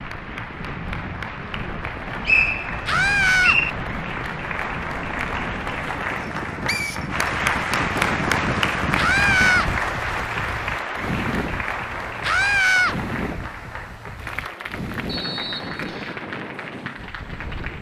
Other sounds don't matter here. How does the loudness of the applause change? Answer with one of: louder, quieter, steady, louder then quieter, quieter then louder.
louder then quieter.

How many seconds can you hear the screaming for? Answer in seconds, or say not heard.
2 s.